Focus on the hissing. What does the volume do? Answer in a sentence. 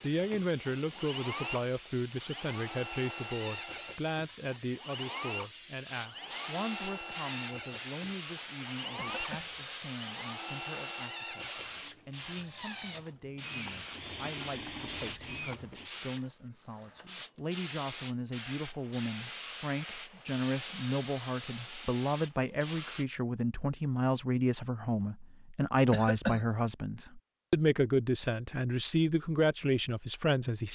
The volume of the hissing goes up.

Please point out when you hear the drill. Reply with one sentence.
You can hear the drill from 0.0 to 15.9 s.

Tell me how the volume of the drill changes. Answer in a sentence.
The loudness of the drill stays about the same.